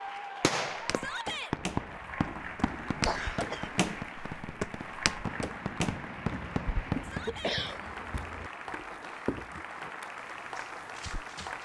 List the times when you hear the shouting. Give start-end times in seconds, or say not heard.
0.9-1.6, 7.0-7.6.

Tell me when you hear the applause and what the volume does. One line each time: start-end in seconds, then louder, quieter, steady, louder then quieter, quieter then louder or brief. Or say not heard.
0.0-11.6 steady.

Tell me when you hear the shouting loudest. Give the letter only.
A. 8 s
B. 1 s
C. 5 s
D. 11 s
B.